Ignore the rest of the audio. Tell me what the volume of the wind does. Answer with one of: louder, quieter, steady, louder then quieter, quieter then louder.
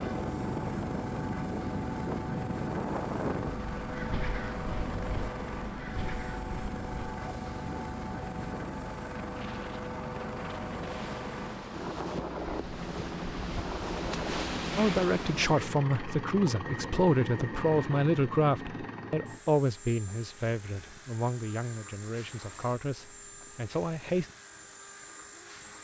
quieter then louder.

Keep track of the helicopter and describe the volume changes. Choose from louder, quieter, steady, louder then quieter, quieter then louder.
quieter.